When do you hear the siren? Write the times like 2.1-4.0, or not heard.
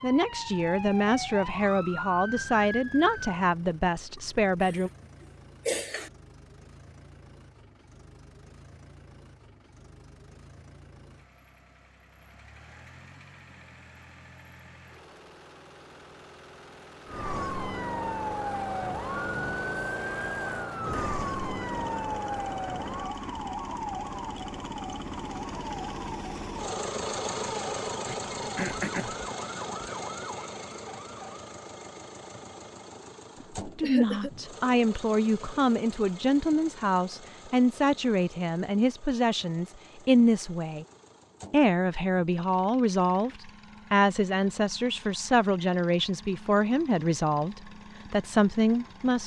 0.0-3.4, 17.1-31.5.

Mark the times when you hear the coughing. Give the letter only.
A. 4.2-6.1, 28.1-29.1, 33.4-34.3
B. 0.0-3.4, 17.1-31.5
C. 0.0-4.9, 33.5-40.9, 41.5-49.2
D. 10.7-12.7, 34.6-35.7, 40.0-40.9
A.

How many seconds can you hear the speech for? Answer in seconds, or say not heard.
20 s.